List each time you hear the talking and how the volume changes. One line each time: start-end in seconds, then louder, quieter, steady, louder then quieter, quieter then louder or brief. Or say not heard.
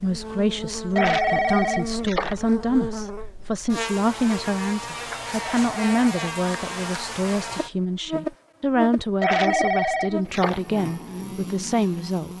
0.0-12.3 steady.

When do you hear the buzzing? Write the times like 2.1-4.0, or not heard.
0.0-12.3.